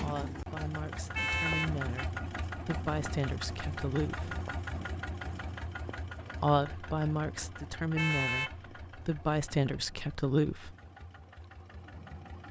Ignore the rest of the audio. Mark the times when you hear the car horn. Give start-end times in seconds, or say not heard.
1.1-2.1, 8.0-8.6.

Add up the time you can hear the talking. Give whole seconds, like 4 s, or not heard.
9 s.